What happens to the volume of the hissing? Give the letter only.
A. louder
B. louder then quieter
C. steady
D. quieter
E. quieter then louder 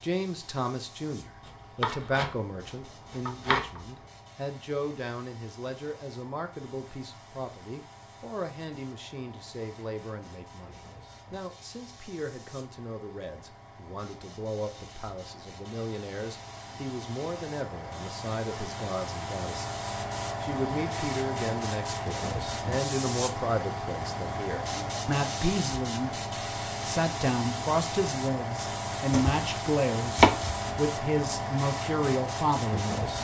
A.